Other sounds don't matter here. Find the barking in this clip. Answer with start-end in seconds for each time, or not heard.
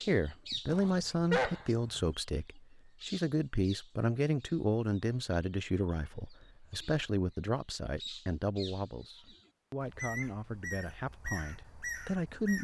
0.7-2.1.